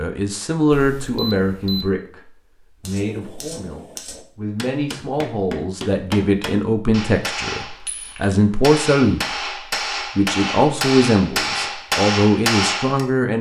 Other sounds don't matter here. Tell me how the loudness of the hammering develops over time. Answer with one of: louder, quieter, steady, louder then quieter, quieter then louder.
louder.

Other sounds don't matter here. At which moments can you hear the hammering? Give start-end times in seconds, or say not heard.
2.8-13.1.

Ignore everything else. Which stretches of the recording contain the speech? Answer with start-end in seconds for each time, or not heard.
0.0-9.2, 10.2-13.3.